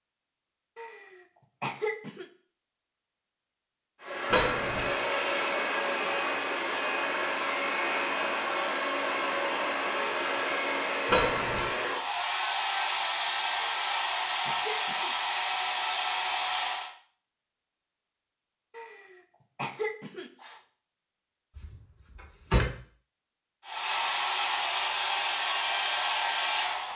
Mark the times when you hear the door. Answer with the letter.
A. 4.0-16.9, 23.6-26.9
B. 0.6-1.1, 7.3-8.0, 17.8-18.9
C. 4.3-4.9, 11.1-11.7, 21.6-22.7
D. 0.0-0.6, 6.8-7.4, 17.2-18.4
C.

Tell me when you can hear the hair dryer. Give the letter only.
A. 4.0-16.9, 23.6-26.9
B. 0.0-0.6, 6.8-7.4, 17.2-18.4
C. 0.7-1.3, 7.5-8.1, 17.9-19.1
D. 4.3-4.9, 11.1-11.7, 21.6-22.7
A.